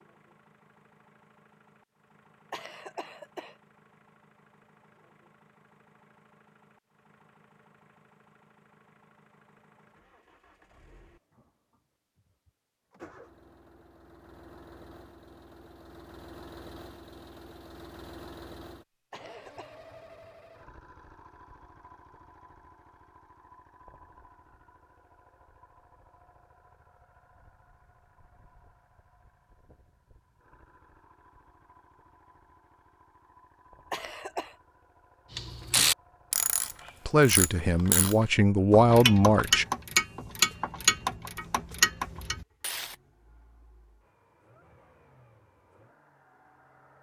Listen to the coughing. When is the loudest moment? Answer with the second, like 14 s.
34 s.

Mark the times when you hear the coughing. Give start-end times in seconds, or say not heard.
2.5-3.5, 19.1-19.8, 33.9-34.5.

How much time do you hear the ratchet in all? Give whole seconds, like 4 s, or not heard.
8 s.